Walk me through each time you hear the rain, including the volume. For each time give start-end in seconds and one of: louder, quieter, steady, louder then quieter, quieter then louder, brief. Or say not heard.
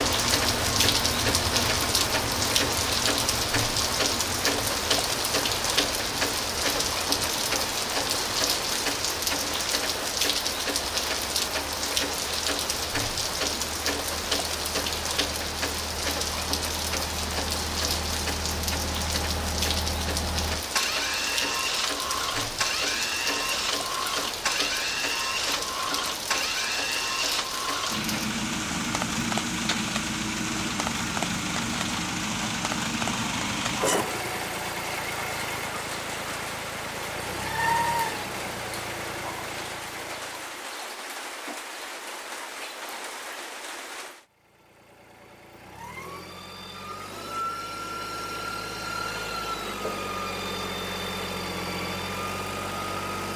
0.0-44.2 quieter.